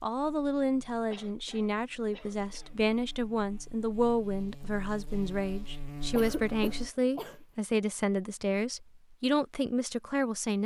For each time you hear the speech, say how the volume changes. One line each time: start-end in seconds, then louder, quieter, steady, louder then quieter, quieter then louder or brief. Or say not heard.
0.0-10.6 steady.